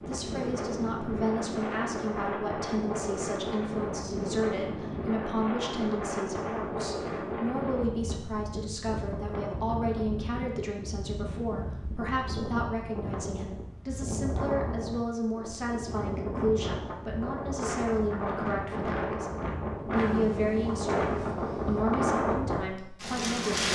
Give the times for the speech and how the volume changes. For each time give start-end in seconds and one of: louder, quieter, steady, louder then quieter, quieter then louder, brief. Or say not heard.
0.1-23.6 steady.